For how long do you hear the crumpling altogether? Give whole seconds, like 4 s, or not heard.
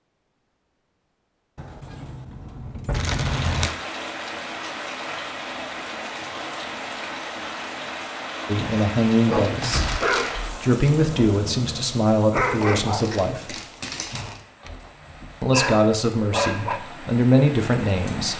4 s.